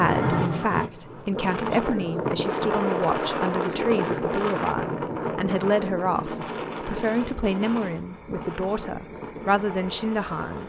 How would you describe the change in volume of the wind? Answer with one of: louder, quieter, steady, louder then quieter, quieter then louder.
quieter.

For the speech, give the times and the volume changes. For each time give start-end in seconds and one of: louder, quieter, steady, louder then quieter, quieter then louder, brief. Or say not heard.
0.0-10.6 steady.